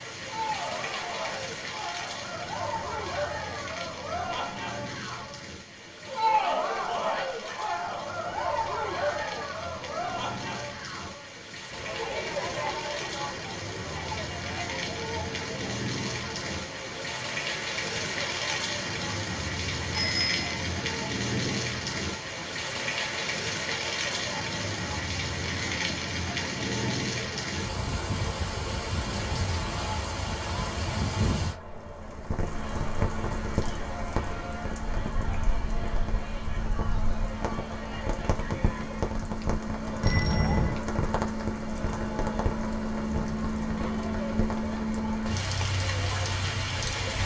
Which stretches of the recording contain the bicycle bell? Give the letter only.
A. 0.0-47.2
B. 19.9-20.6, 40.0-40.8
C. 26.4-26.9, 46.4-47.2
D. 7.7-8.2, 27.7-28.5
B.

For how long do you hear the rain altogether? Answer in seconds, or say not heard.
47 s.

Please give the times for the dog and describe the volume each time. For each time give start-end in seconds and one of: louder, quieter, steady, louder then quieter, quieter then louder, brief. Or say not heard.
not heard.